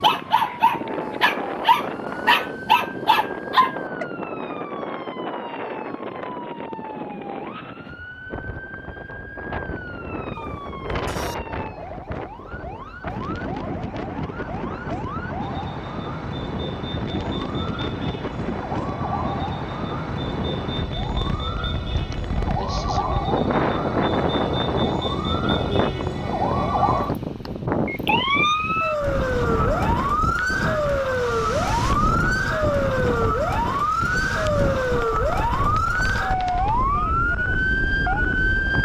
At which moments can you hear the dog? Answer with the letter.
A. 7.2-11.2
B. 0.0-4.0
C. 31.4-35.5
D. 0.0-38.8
B.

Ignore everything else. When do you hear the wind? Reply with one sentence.
You can hear the wind from 0.0 to 38.8 s.